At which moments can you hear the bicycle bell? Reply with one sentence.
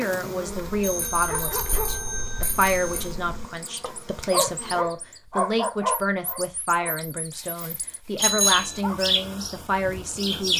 The bicycle bell can be heard from 0.8 to 3.1 s and from 8.2 to 8.8 s.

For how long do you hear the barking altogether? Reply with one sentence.
The barking can be heard for 9 seconds in total.